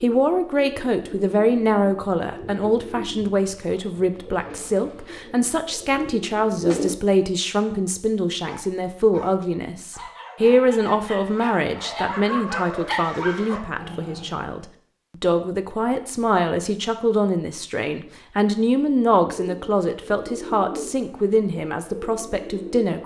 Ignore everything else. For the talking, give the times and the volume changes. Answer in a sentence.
The talking can be heard from 0.0 to 23.0 s, at a steady volume.